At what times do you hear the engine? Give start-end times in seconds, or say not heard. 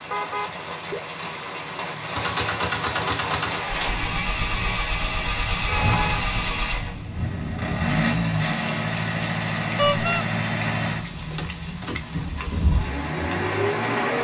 2.1-14.1.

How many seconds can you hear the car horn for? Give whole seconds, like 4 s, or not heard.
2 s.